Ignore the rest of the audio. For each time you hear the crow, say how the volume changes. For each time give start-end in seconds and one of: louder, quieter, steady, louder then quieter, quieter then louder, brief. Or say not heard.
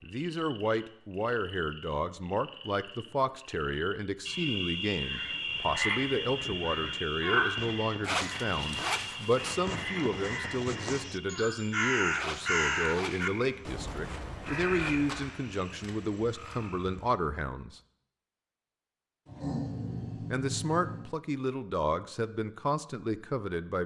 5.0-15.3 louder then quieter.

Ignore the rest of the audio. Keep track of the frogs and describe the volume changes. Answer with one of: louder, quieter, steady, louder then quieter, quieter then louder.
louder then quieter.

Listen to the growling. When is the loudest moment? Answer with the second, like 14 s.
20 s.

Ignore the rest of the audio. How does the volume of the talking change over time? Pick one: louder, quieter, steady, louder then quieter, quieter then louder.
steady.